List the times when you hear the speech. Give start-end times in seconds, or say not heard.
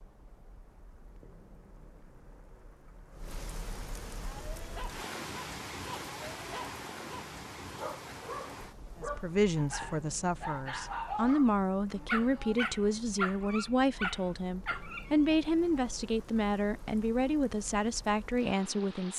9.0-19.1.